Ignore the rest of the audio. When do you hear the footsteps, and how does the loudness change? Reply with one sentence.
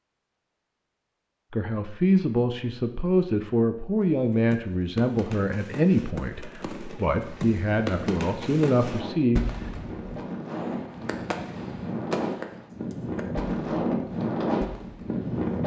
The footsteps can't be heard in this clip.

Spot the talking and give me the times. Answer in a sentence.
The talking can be heard from 1.5 to 9.6 s.